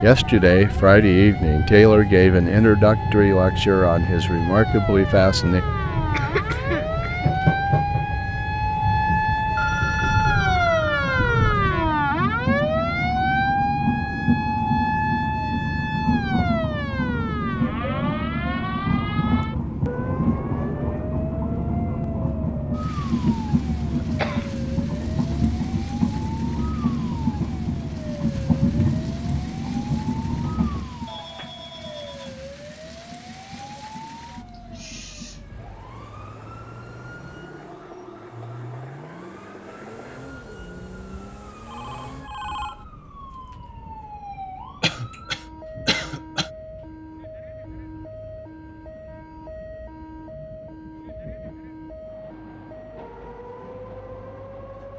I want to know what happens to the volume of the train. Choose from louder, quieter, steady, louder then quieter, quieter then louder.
quieter.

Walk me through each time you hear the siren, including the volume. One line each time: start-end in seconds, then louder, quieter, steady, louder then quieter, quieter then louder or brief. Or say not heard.
0.0-54.9 quieter.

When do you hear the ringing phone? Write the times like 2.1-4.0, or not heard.
9.6-11.6, 31.1-32.4, 41.6-42.9.